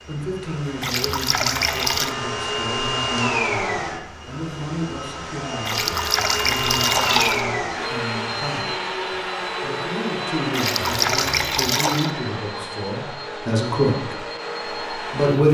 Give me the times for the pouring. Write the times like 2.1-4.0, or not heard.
0.8-2.1, 5.7-7.5, 10.5-12.1.